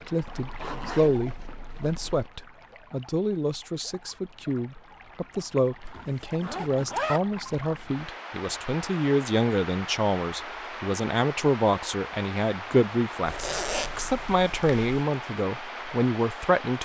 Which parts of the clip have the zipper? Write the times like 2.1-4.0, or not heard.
0.2-2.3, 5.8-7.2, 13.2-15.0.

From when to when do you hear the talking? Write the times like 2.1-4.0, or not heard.
0.1-16.8.